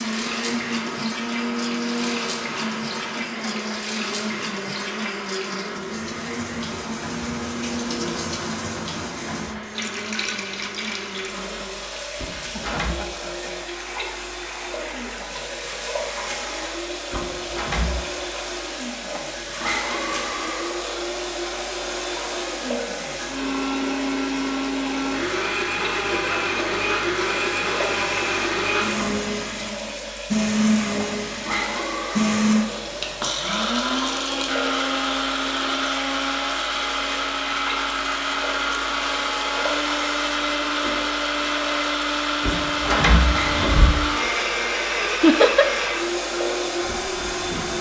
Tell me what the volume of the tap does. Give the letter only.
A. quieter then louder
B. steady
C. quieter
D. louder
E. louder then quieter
B.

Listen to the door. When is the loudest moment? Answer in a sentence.
The loudest moment of the door is at 43 seconds.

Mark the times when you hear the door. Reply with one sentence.
The door can be heard from 12.2 to 13.0 s, from 17.1 to 18.0 s and from 42.4 to 44.0 s.